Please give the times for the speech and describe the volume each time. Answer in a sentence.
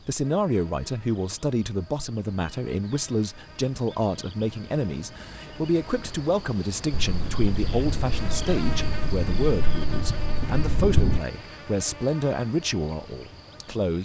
The speech can be heard from 0.1 to 13.9 s, at a steady volume.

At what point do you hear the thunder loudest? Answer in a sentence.
The volume of the thunder peaks at 11 seconds.